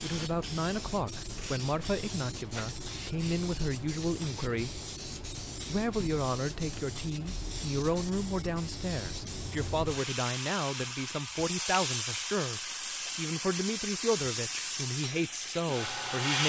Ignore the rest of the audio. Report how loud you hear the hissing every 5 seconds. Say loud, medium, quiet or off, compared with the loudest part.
medium, medium, loud, loud.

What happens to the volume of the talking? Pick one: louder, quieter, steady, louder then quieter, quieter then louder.
steady.